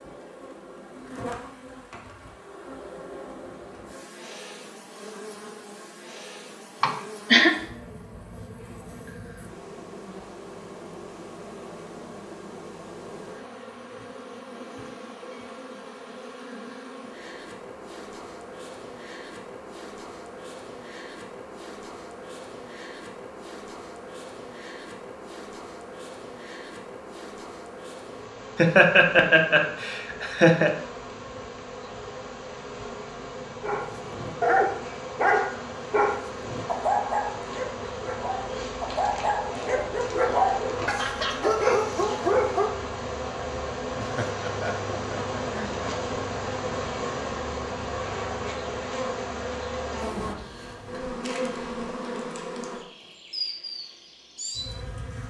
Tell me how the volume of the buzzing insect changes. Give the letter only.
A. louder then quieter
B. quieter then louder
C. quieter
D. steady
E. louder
E.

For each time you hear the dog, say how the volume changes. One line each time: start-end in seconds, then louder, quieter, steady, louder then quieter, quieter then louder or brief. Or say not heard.
33.6-42.7 quieter then louder.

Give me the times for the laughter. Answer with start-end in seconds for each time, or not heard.
6.8-7.5, 28.6-30.7, 44.0-45.8.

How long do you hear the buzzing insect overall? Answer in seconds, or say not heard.
55 s.